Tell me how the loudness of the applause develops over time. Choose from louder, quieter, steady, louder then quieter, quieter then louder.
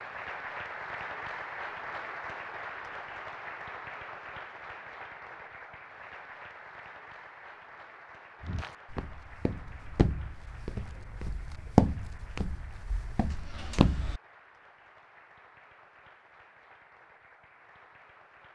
quieter.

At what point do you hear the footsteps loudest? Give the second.
12 s.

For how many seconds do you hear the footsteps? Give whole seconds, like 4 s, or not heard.
6 s.